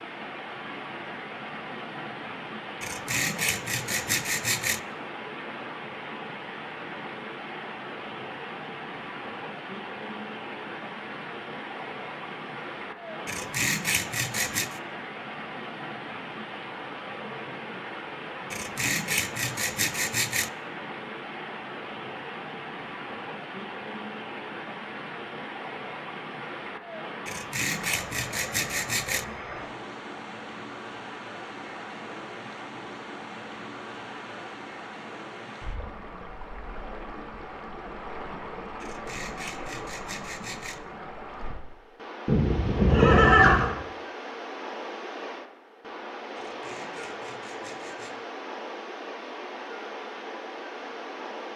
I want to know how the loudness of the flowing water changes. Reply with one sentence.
The loudness of the flowing water stays about the same.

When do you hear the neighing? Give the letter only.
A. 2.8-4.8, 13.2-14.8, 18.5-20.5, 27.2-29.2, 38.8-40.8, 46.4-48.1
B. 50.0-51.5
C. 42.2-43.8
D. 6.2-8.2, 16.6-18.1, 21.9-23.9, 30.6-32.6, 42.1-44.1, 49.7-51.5
C.